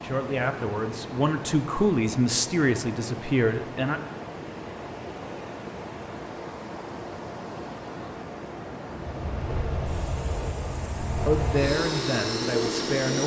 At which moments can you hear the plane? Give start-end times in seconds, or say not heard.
9.1-13.2.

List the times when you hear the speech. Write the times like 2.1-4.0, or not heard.
0.0-4.0, 11.2-13.2.